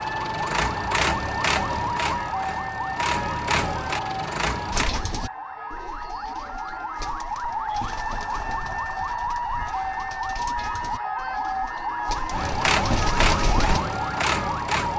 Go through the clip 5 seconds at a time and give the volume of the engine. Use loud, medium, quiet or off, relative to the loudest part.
loud, off, loud.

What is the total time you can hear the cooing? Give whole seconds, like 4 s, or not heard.
9 s.